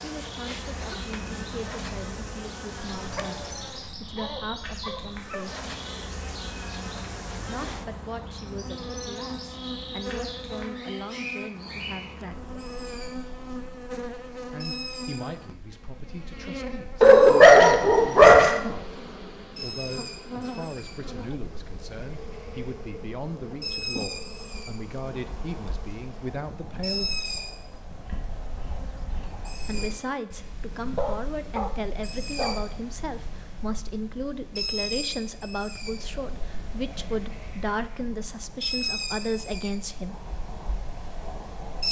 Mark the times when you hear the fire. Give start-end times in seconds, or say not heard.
not heard.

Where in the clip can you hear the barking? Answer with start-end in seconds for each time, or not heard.
3.0-5.5, 17.0-18.6, 30.8-32.5.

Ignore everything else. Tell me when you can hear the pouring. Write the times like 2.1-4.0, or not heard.
not heard.